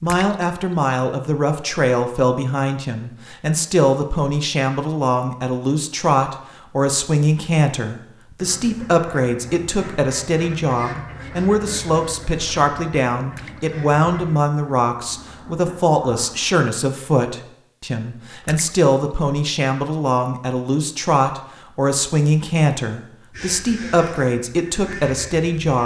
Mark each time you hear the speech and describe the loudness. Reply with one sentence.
You can hear the speech from 0.0 to 25.8 s, at a steady volume.